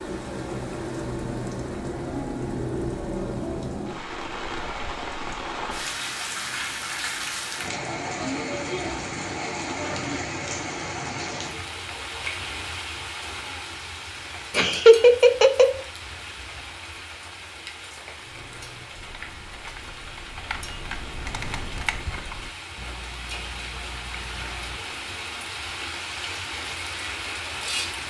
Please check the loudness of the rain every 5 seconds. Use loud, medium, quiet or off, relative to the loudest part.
loud, loud, loud, medium, medium, loud.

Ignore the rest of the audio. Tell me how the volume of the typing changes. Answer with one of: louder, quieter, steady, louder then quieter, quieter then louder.
louder then quieter.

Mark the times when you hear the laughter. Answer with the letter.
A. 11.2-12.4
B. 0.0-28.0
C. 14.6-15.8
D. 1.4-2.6
C.